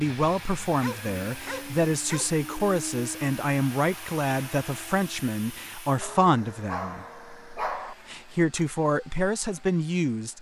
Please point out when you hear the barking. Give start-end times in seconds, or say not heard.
0.8-2.3, 6.0-8.0.